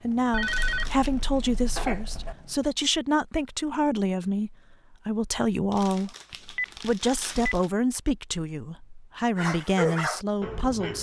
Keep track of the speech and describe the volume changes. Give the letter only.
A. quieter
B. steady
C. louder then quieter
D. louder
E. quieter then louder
B.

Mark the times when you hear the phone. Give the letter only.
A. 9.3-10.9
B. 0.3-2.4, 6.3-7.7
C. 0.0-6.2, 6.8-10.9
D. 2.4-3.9
B.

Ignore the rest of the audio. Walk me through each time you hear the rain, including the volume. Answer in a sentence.
The rain can't be heard in this clip.